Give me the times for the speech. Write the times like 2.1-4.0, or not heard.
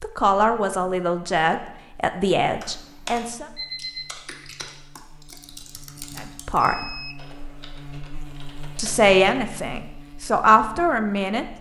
0.0-3.5, 6.2-6.8, 8.8-11.4.